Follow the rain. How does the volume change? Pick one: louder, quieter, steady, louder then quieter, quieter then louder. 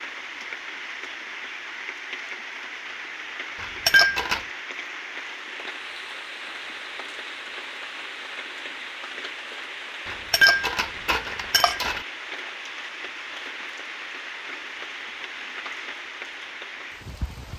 steady.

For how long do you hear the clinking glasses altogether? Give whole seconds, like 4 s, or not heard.
3 s.